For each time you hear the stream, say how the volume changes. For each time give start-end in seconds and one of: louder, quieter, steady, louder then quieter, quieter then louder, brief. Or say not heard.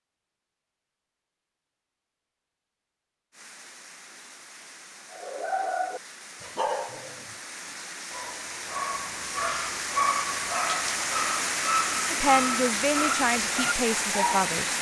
3.3-14.7 louder.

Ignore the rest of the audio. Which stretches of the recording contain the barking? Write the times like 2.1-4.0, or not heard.
5.1-14.5.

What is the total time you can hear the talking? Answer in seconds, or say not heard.
3 s.